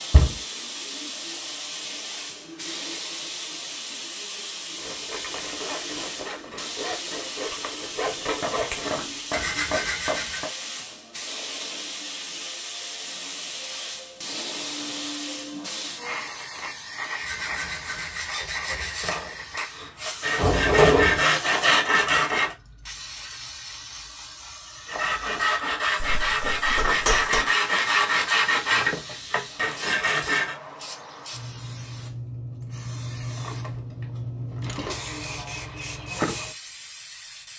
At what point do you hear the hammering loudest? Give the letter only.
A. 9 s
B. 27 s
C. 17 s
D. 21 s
B.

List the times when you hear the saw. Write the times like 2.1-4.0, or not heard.
4.8-10.4, 17.1-22.6, 24.9-30.6.